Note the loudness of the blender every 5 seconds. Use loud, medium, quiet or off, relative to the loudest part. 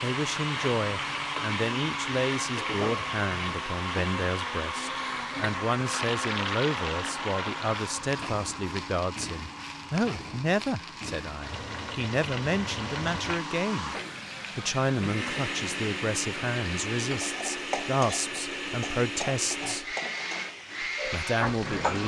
loud, loud, medium, loud, loud.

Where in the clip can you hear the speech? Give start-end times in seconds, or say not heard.
0.0-13.9, 14.6-19.9, 21.1-22.0.